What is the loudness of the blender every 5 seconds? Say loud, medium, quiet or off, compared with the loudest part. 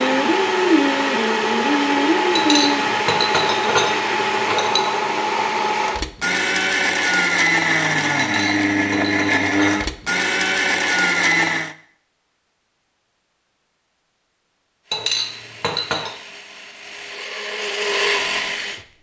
loud, loud, loud, medium.